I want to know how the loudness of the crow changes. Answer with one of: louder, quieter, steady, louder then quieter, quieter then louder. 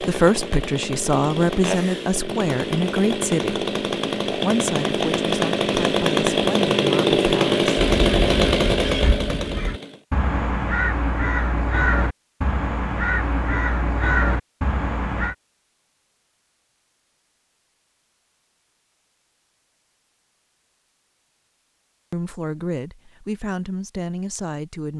louder.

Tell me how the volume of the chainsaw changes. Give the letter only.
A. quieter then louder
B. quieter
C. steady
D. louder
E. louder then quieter
D.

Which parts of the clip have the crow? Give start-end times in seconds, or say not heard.
7.8-15.3.